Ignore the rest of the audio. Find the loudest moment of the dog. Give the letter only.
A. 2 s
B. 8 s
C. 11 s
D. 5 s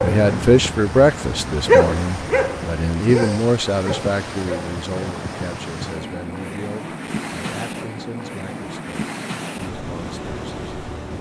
A.